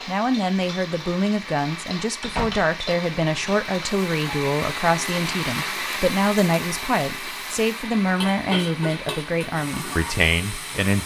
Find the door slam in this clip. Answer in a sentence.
You can hear the door slam from 2.2 to 2.7 s.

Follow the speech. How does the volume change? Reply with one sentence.
The volume of the speech stays about the same.